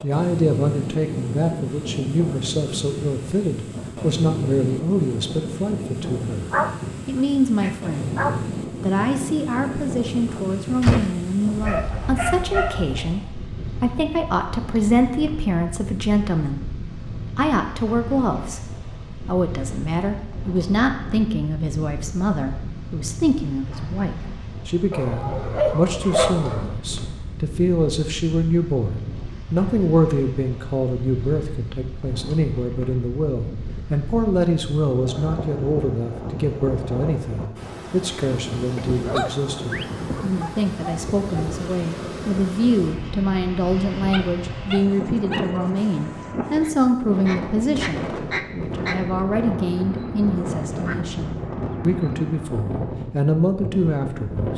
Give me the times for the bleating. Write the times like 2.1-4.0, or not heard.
not heard.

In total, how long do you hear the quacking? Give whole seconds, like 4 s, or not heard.
6 s.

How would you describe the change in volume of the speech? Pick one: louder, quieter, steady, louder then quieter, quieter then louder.
steady.